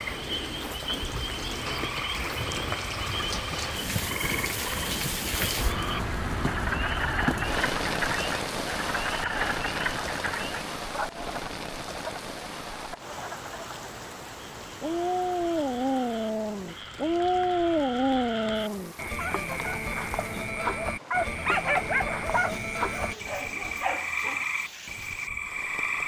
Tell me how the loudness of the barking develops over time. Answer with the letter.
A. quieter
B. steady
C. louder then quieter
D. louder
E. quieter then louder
A.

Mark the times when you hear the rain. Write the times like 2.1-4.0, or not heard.
0.0-26.0.